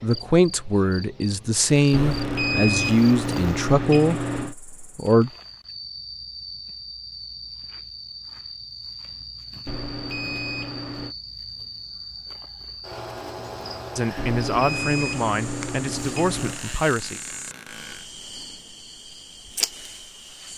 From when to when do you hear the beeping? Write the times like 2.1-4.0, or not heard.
1.9-4.5, 9.7-11.2, 14.2-16.6.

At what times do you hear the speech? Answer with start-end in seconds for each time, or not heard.
0.0-5.3, 13.9-17.2.